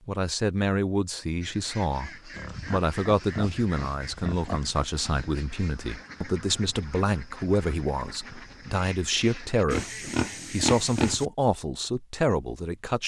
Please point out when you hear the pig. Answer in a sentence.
The pig can be heard from 2.3 to 4.8 s and from 9.7 to 11.2 s.